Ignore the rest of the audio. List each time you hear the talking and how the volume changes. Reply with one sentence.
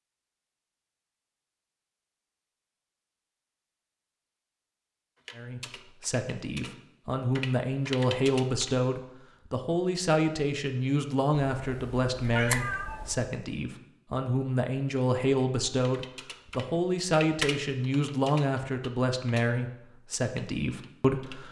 The talking can be heard from 5.3 to 21.4 s, at a steady volume.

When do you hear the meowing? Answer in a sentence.
You can hear the meowing from 11.5 to 13.3 s.